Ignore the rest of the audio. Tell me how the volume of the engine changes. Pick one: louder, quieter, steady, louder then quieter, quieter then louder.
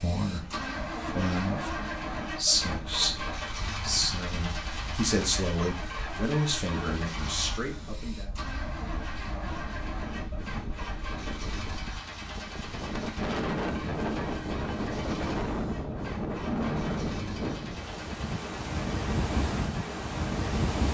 quieter.